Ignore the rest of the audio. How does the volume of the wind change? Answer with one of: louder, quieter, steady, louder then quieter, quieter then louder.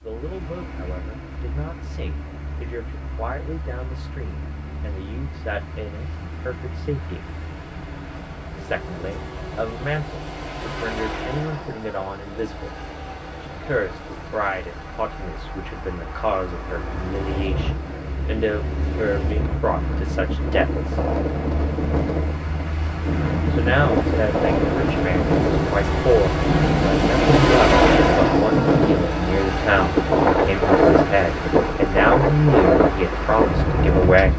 louder.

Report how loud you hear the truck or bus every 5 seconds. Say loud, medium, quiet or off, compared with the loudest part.
quiet, quiet, quiet, quiet, medium, loud, medium.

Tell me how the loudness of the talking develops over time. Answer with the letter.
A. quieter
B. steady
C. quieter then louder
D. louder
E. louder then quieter
D.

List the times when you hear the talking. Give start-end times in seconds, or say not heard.
0.0-7.2, 8.6-12.8, 13.4-21.0, 23.5-34.3.